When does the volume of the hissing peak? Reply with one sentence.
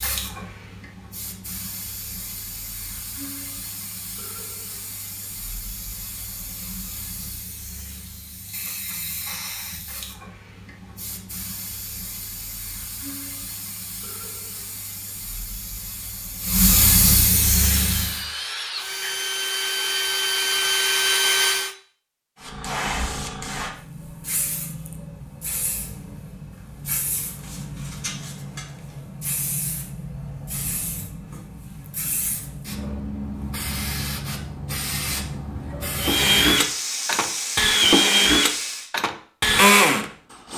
The loudest moment of the hissing is at 17 seconds.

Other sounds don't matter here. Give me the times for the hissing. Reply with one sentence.
The hissing can be heard from 0.0 to 18.2 s and from 22.4 to 38.9 s.